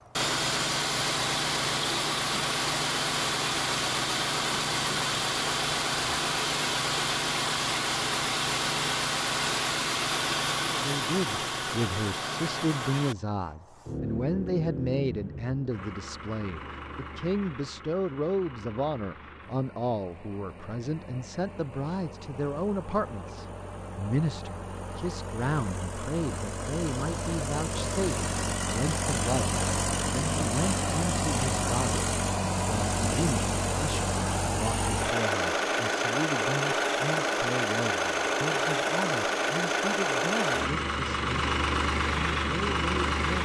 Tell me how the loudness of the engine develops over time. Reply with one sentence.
The volume of the engine goes down, then up.